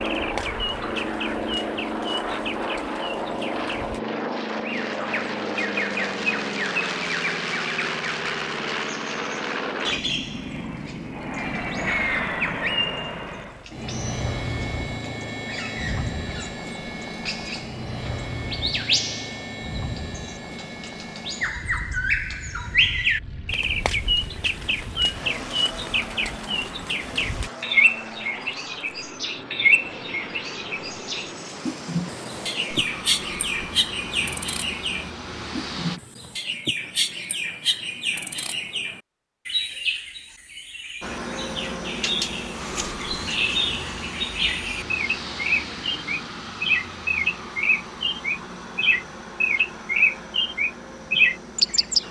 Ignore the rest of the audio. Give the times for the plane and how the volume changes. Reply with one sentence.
The plane can be heard from 0.0 to 36.0 s, getting quieter; and from 41.0 to 52.0 s, getting quieter.